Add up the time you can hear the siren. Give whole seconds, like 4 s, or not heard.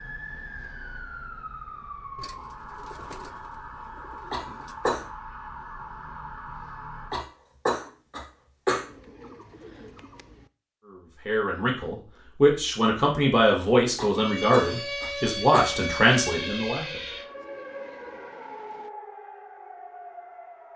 14 s.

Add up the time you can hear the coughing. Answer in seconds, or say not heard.
4 s.